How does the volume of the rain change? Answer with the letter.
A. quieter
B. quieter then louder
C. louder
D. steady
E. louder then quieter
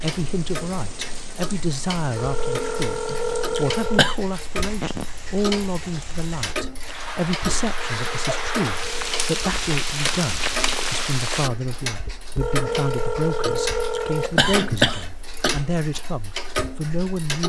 C.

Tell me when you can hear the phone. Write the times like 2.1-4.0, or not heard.
2.1-4.2, 7.8-9.3, 12.4-14.8.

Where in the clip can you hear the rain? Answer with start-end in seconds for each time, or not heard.
0.0-11.5.